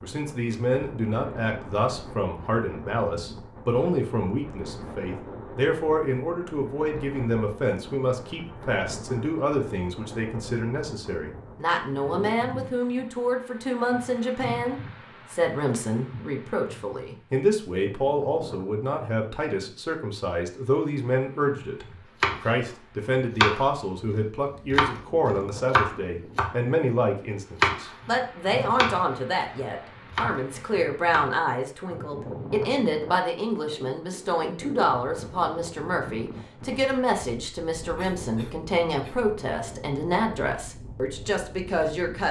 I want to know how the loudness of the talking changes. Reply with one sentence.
The volume of the talking stays about the same.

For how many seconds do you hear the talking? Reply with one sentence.
The talking can be heard for 42 seconds in total.